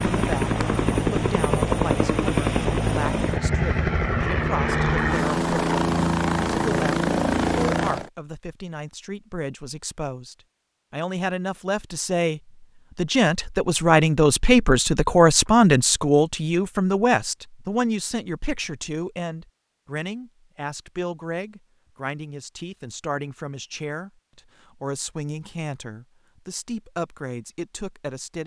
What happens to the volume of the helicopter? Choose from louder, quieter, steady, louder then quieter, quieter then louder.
steady.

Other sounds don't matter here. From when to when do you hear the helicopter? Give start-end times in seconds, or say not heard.
0.0-8.1.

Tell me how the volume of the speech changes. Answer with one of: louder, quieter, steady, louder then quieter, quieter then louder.
louder then quieter.